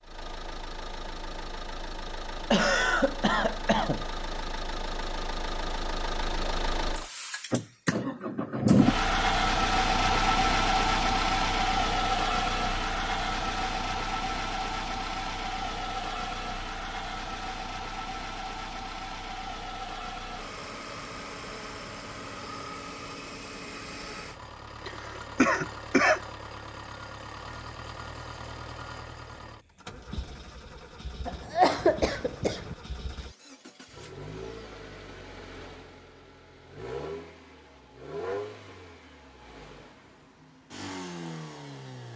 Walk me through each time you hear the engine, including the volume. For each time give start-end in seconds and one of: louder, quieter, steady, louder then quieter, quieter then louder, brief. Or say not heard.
0.0-42.1 louder then quieter.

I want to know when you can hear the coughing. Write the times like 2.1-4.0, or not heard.
2.5-4.0, 24.9-26.2, 31.2-32.8.